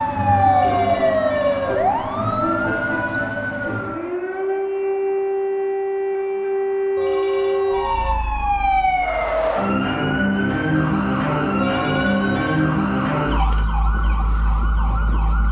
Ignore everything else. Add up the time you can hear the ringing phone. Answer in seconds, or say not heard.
4 s.